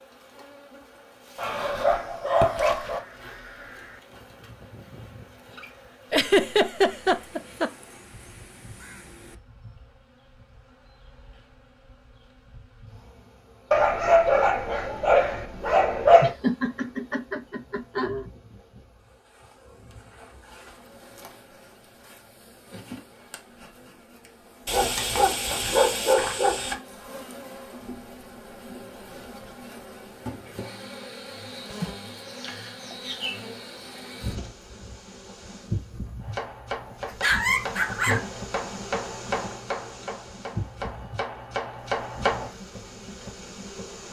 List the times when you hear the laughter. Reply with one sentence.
You can hear the laughter from 6.1 to 7.7 s, from 16.2 to 18.2 s and from 31.7 to 33.1 s.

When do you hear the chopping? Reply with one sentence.
The chopping can be heard from 36.2 to 42.5 s.